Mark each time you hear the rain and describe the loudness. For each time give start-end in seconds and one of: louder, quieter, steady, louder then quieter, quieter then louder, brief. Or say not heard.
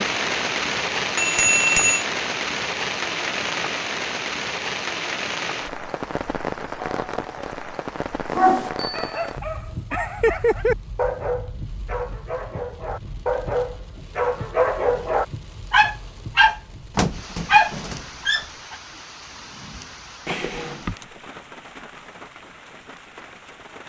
0.0-23.8 quieter.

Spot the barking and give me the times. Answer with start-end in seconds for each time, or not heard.
8.3-18.8.